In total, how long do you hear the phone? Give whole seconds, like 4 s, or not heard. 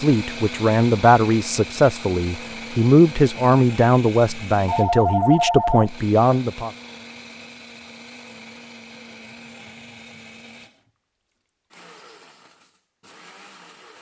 2 s.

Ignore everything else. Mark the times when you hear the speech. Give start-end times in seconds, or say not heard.
0.0-6.7.